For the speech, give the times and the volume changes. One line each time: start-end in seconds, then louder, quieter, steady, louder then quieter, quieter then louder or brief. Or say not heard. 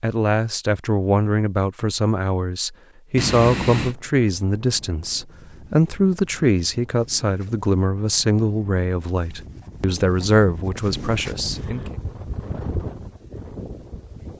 0.0-11.9 steady.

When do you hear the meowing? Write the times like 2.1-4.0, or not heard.
3.1-4.0.